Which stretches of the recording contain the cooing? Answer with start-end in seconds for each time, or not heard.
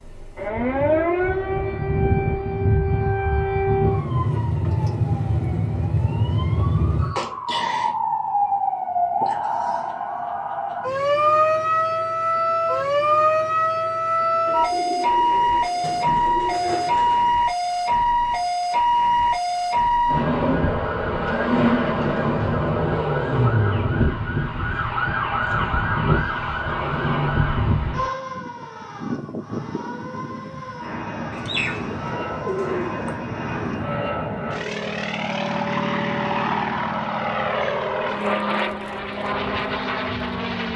14.4-17.4, 31.3-33.1.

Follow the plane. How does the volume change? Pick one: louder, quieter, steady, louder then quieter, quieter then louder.
louder.